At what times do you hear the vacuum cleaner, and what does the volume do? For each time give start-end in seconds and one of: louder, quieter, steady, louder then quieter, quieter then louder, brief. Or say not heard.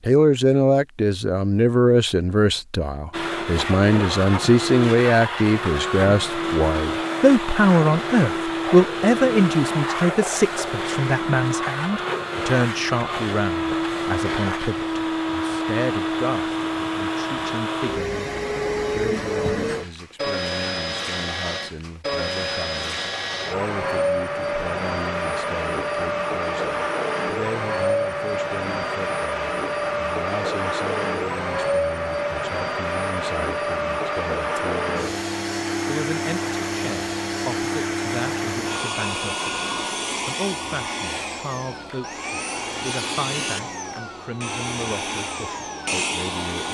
3.1-46.6 steady.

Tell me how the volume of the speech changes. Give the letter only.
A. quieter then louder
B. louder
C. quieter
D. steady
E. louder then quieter
C.